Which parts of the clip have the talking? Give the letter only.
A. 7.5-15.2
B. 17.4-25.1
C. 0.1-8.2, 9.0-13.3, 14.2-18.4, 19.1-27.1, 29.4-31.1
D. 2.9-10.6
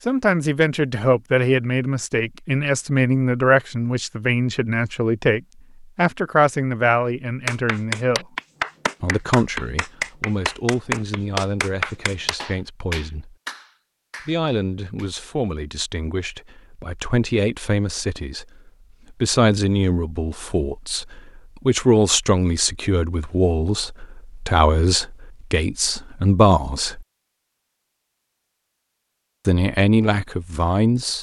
C.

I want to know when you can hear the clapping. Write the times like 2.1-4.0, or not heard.
7.5-15.2.